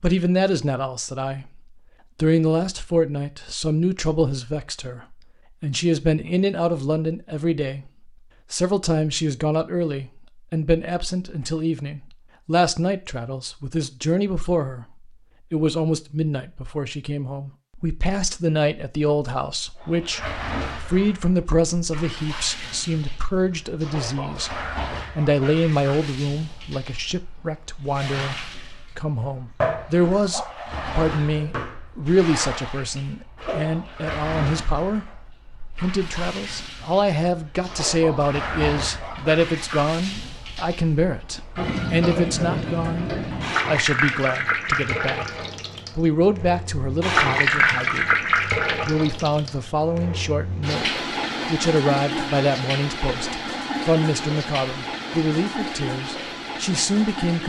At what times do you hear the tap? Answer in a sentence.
The tap can be heard from 19.8 to 57.4 s.